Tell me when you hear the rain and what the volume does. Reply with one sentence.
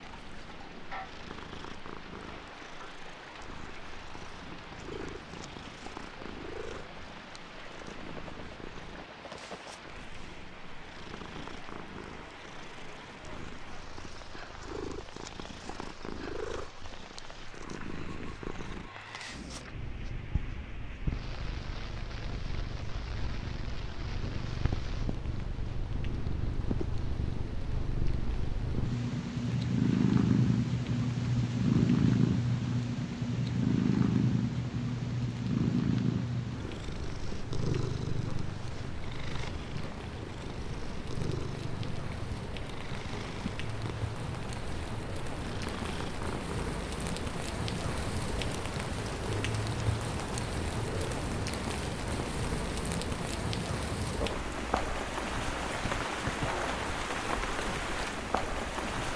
The rain can be heard from 0.0 to 59.1 s, getting louder.